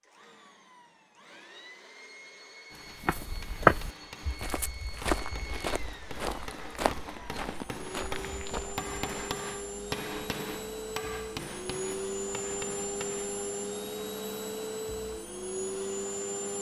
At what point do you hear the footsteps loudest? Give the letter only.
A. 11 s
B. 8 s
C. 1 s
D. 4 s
D.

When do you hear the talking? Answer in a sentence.
The talking can't be heard in this clip.